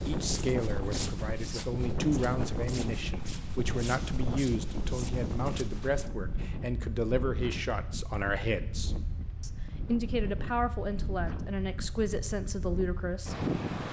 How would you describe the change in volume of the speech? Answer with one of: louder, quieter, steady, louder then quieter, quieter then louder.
steady.